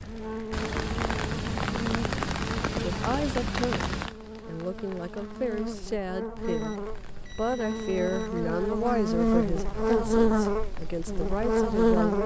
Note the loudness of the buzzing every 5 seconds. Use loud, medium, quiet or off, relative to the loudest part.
quiet, medium, loud.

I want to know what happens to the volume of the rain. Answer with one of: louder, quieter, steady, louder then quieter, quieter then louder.
quieter.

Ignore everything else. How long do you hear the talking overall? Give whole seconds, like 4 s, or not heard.
9 s.